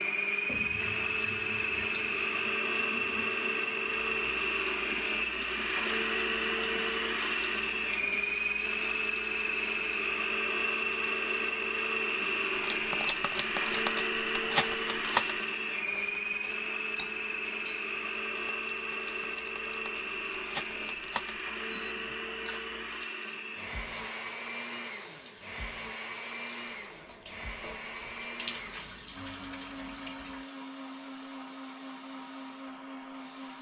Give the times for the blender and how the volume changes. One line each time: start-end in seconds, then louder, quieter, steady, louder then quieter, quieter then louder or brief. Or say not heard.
0.0-33.5 quieter.